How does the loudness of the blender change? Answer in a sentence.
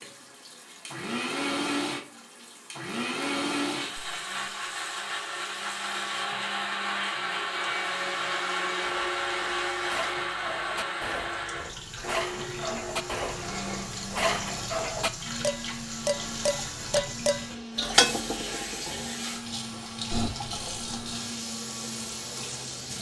The volume of the blender goes down.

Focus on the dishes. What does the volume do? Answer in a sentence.
The loudness of the dishes goes up.